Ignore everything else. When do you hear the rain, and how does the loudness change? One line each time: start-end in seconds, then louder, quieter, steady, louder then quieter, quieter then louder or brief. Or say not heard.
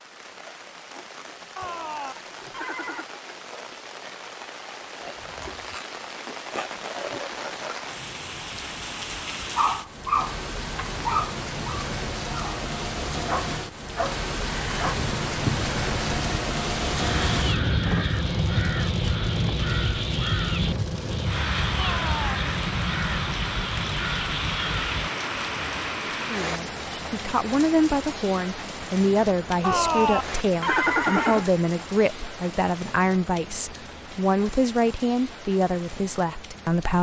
0.0-36.9 louder then quieter.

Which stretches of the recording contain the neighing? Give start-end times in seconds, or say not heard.
1.6-3.0, 21.8-22.4, 29.6-31.5.